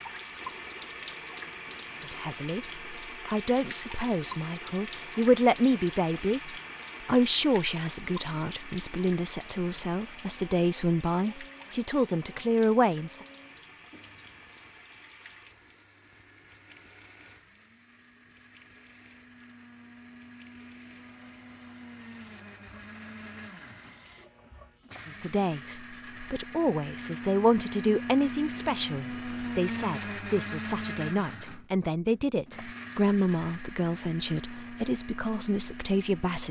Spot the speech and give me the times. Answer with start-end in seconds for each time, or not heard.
1.9-13.2, 25.1-36.4.